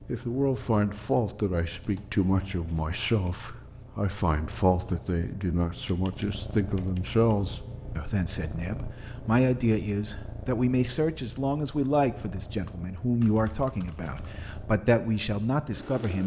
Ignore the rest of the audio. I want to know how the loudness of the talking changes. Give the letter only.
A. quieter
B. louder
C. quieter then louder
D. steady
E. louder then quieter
D.